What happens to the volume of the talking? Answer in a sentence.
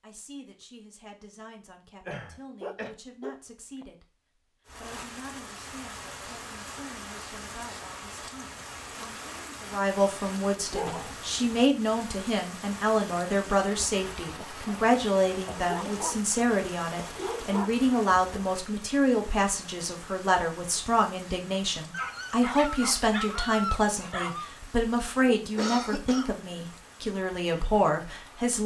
The volume of the talking goes up.